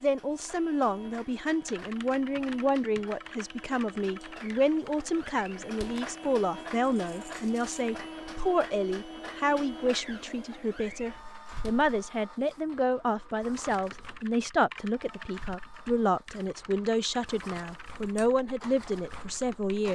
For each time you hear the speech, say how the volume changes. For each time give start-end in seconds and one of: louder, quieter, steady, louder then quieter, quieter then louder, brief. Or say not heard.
0.0-19.9 steady.